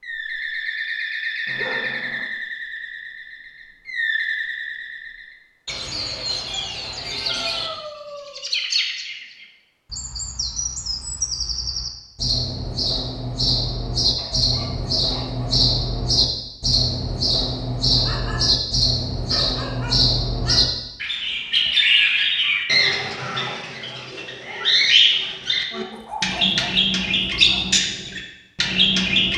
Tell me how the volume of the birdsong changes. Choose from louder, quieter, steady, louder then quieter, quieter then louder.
louder.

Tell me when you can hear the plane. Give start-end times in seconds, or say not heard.
not heard.